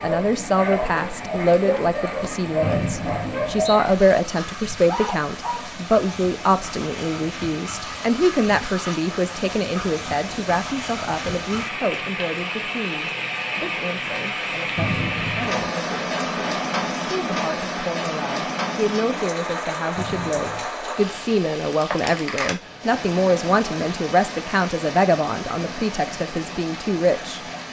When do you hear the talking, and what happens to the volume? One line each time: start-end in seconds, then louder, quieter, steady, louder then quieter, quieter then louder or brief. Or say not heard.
0.0-27.4 quieter then louder.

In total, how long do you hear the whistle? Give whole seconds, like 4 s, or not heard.
3 s.